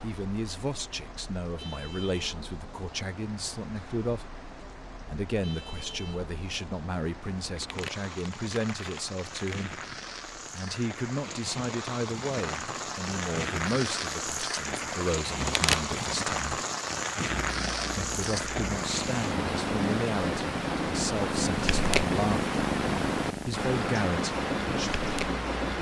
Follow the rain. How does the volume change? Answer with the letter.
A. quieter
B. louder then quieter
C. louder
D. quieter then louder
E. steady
C.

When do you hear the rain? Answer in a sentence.
You can hear the rain from 0.0 to 25.7 s.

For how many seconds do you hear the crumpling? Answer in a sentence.
The crumpling can be heard for 3 seconds in total.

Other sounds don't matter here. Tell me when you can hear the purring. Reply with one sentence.
You can hear the purring from 17.2 to 25.7 s.